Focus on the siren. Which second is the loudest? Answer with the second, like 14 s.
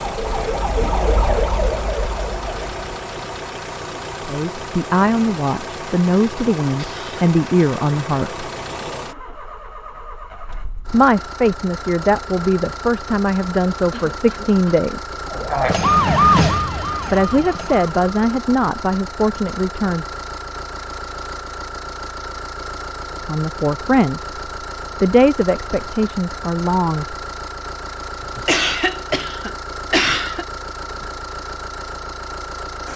16 s.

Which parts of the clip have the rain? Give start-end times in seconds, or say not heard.
not heard.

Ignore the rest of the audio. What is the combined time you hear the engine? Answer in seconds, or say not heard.
33 s.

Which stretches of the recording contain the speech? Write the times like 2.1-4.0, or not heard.
4.2-8.4, 10.9-15.2, 17.1-20.1, 23.2-24.3, 25.0-27.1.